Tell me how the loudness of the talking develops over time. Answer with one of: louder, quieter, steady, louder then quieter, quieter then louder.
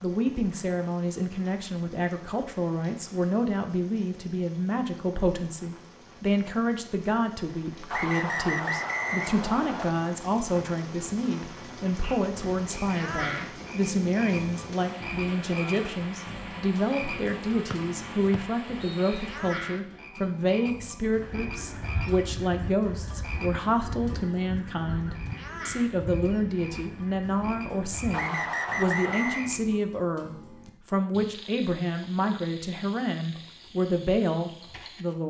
steady.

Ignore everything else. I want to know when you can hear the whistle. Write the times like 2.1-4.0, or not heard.
7.9-9.9, 17.7-19.2, 28.1-29.5.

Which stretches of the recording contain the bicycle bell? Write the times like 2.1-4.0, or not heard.
not heard.